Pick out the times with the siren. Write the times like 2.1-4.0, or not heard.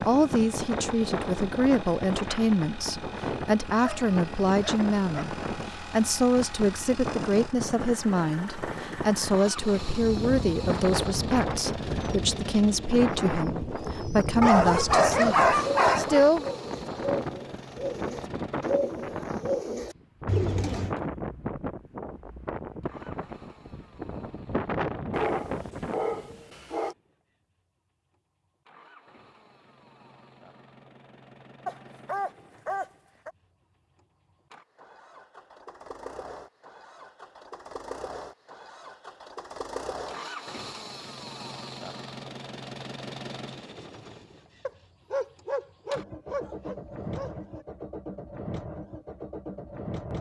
not heard.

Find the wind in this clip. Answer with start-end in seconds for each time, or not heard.
0.0-26.6.